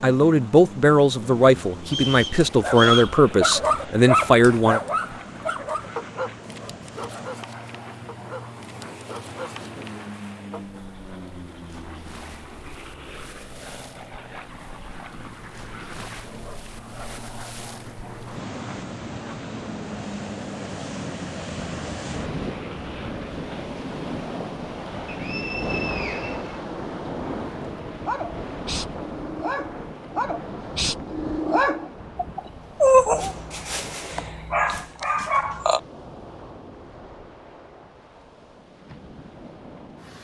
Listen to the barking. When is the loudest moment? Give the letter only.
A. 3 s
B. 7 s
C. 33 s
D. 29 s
C.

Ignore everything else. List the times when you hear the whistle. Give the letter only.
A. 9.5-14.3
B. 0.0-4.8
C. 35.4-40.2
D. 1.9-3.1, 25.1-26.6
D.